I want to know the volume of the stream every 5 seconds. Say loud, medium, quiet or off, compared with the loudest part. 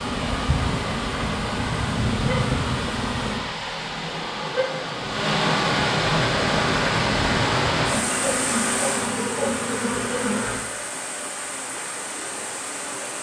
medium, loud, medium.